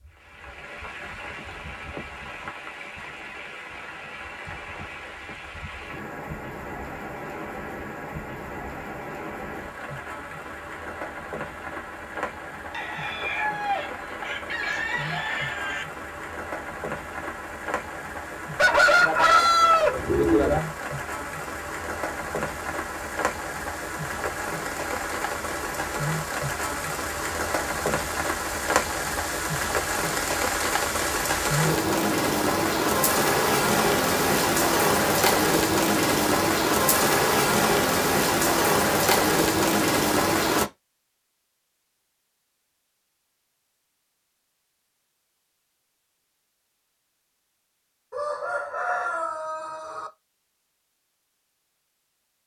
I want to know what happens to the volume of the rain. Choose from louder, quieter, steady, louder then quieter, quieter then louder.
louder.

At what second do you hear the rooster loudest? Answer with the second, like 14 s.
19 s.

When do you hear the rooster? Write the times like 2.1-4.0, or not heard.
12.7-15.8, 18.6-20.6, 48.1-50.1.